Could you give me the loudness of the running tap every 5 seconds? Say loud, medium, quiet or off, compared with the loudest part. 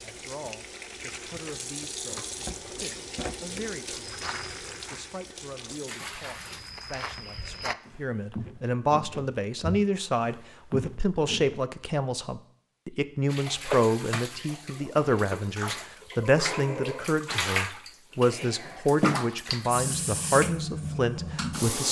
medium, medium, loud, loud, loud.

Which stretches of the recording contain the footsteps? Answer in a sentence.
You can hear the footsteps from 4.0 to 11.6 s.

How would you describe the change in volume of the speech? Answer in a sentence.
The loudness of the speech goes up.